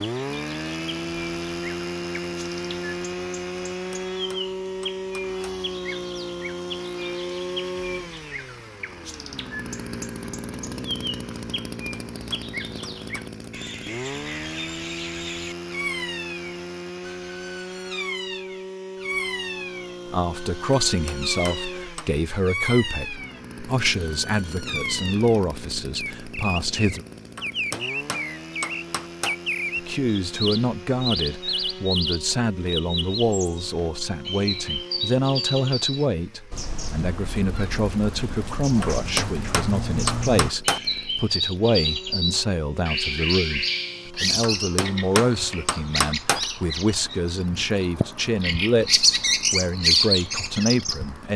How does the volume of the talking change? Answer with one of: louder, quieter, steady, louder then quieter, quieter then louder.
steady.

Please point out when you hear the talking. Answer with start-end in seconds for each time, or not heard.
20.1-27.1, 29.8-51.3.